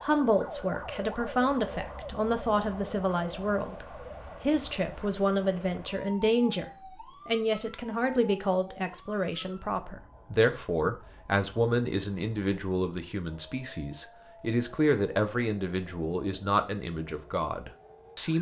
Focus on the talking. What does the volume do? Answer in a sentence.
The loudness of the talking stays about the same.